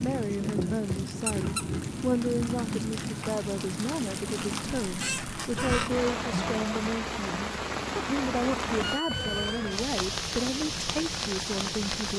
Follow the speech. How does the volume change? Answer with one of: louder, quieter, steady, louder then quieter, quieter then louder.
steady.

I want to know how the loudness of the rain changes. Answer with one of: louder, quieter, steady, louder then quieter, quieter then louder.
steady.